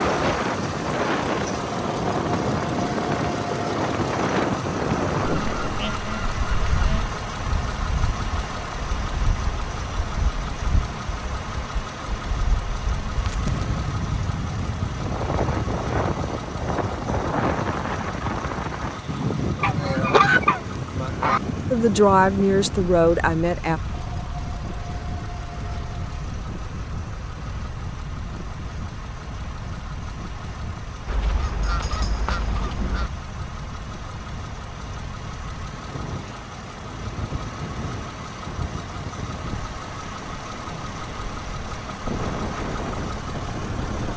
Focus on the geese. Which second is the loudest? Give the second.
20 s.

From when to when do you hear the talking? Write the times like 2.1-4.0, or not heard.
21.7-23.8.